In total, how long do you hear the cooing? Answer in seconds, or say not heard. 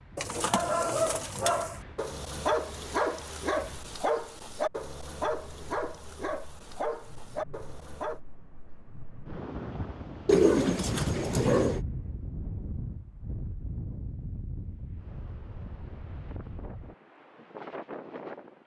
3 s.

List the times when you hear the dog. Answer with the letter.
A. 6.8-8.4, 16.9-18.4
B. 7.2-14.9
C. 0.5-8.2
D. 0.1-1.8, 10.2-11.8
C.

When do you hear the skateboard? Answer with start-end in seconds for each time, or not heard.
not heard.